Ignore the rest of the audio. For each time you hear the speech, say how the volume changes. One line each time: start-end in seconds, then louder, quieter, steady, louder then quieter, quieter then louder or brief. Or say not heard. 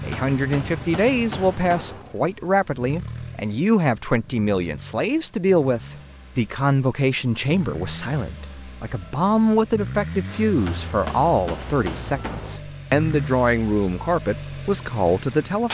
0.0-15.6 steady.